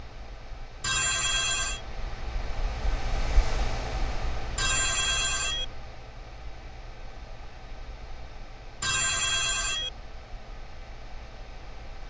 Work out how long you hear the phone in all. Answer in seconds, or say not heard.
3 s.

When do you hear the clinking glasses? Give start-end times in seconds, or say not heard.
not heard.